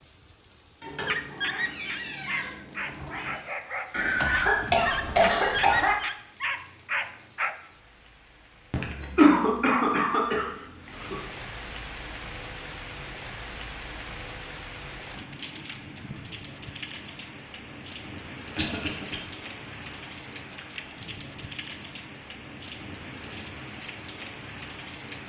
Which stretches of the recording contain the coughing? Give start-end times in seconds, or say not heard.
3.9-6.0, 8.7-11.2, 18.6-19.2.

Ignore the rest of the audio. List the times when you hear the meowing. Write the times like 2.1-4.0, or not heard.
0.8-3.5.